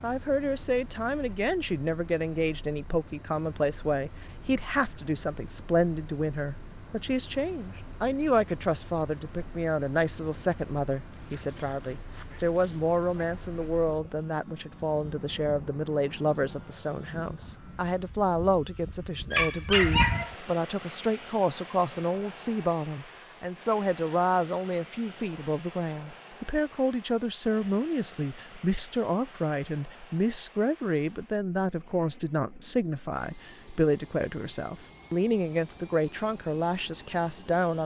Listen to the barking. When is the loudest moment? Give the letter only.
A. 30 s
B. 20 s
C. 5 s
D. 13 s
B.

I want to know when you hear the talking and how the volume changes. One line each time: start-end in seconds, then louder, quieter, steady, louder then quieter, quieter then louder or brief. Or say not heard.
0.0-37.8 steady.